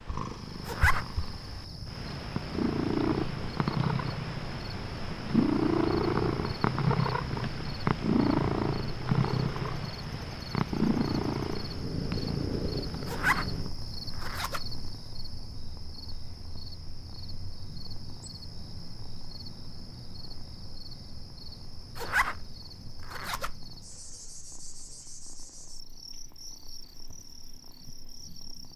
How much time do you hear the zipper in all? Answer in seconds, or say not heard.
4 s.